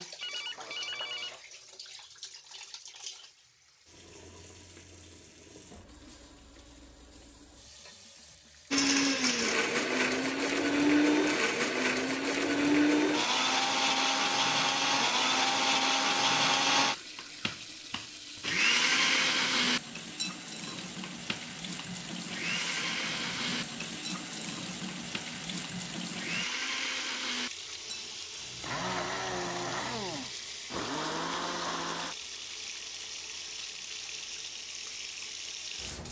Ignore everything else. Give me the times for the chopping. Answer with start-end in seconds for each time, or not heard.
not heard.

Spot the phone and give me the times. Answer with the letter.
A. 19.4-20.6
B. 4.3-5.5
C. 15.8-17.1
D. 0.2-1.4
D.